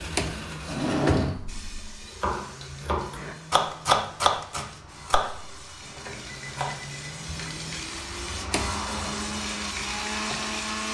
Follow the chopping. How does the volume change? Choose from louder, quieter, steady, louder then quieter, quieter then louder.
louder then quieter.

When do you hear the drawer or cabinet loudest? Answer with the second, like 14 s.
1 s.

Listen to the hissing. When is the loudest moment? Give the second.
9 s.